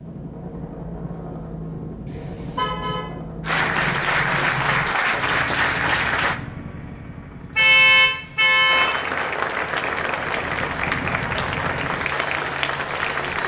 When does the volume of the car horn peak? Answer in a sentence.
The loudest moment of the car horn is at 8 seconds.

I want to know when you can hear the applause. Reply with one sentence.
You can hear the applause from 3.4 to 6.4 s and from 8.7 to 13.4 s.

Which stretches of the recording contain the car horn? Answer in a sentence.
You can hear the car horn from 2.0 to 3.0 s and from 7.5 to 9.0 s.